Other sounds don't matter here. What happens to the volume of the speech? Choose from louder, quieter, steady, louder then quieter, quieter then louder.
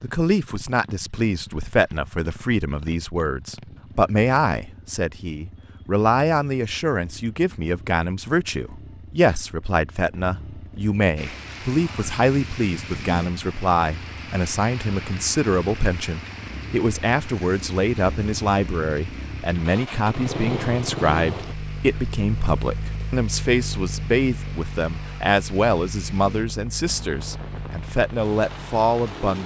steady.